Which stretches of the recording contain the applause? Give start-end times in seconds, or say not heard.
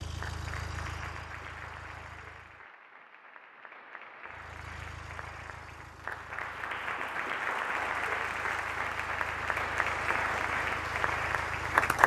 0.0-12.0.